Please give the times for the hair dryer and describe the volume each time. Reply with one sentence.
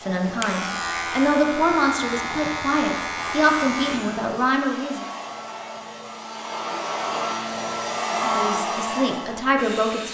You can hear the hair dryer from 0.0 to 10.0 s, getting louder.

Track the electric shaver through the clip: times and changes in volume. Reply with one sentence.
You can hear the electric shaver from 0.0 to 4.2 s, at a steady volume.